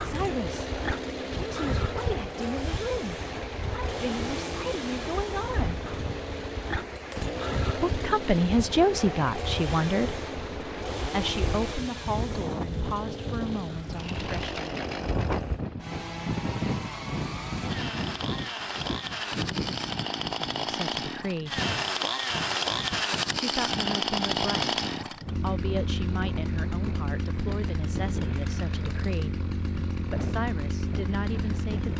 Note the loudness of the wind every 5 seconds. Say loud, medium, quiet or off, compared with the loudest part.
loud, loud, loud, loud, medium, medium, medium.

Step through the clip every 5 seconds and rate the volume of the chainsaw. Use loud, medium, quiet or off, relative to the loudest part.
medium, medium, medium, medium, loud, medium, medium.